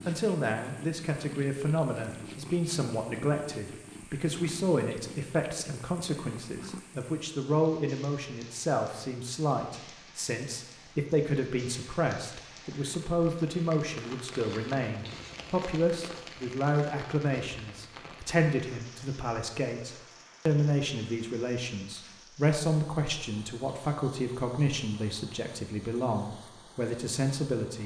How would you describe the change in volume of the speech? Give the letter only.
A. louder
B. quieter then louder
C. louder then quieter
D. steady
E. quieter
D.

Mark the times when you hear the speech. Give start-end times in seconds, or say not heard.
0.1-27.8.